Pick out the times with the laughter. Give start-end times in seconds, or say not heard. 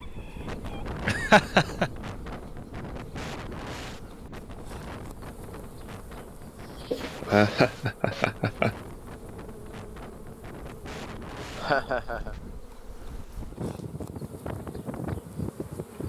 1.1-1.9, 6.9-8.8, 11.6-12.3.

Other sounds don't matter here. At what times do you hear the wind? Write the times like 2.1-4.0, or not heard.
0.0-16.0.